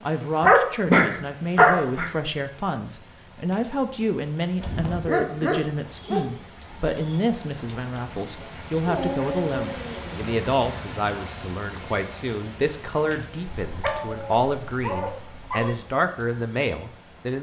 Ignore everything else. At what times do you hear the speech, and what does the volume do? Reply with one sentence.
The speech can be heard from 0.0 to 17.3 s, at a steady volume.